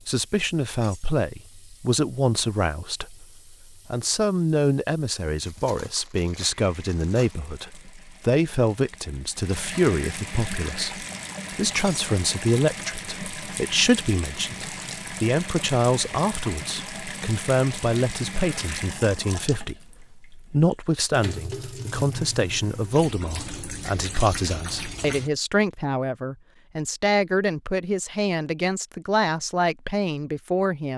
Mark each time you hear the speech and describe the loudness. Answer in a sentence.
The speech can be heard from 0.1 to 30.9 s, at a steady volume.